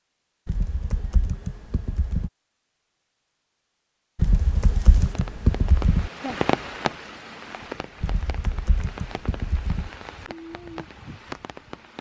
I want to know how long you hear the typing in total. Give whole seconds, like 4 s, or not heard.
6 s.